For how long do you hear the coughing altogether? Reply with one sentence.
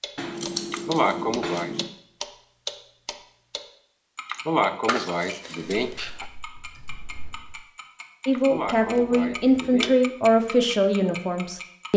You can hear the coughing for 5 seconds altogether.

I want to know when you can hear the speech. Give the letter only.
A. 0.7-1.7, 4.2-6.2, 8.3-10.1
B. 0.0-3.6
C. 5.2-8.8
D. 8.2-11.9
D.